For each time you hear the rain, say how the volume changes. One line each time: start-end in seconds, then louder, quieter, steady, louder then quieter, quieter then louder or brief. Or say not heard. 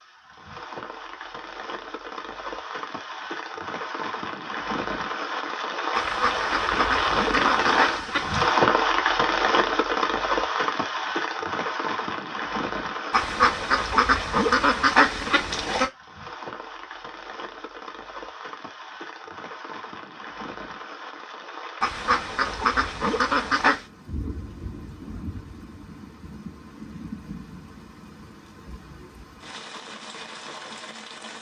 0.0-31.3 louder then quieter.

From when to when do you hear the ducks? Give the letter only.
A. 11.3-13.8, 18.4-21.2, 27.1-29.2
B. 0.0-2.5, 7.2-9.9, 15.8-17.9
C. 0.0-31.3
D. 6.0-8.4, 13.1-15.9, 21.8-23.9
D.